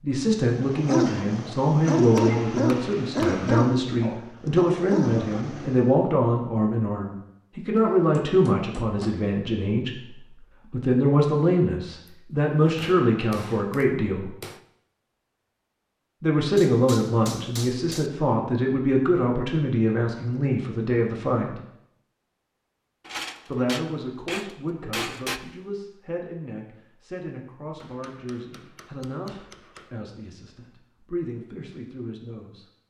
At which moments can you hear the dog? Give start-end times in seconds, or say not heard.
0.5-5.8.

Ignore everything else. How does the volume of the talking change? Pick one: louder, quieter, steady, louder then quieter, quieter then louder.
quieter.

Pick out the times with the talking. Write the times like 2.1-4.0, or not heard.
0.0-14.3, 16.2-21.6, 23.4-32.6.